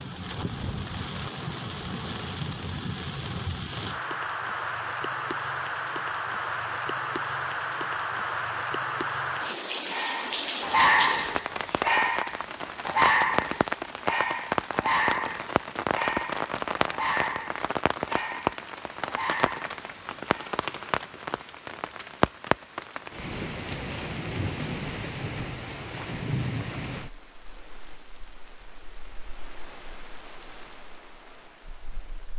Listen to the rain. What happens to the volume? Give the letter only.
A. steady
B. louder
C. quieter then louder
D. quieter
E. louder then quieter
D.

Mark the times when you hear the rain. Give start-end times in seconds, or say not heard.
0.0-32.3.